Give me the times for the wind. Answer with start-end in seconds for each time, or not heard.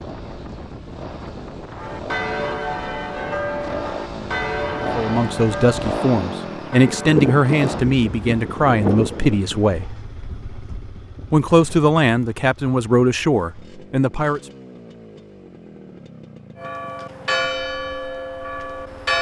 0.0-11.8.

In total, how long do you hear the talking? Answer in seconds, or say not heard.
8 s.